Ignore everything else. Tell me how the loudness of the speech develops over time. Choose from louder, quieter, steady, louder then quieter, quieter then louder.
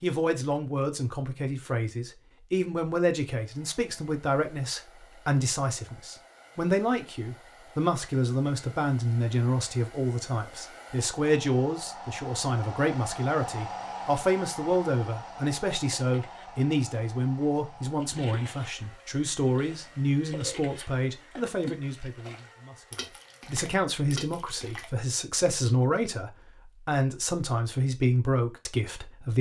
steady.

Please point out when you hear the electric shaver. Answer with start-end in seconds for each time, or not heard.
not heard.